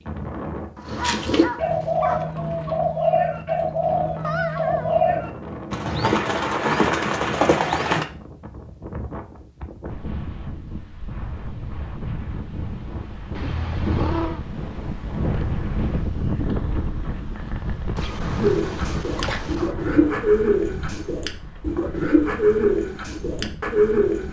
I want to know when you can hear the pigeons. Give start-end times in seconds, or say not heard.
0.8-8.1, 18.4-24.2.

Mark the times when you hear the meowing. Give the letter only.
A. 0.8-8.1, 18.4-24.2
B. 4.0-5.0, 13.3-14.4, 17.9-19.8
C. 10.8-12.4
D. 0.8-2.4
B.